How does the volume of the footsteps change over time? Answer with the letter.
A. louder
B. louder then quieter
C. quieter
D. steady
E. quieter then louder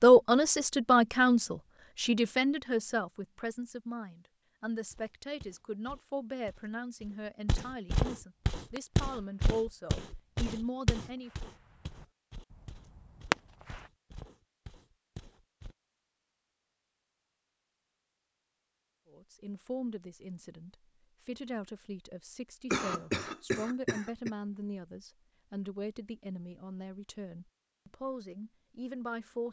B.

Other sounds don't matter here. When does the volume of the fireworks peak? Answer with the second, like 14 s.
13 s.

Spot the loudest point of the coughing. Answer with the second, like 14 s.
23 s.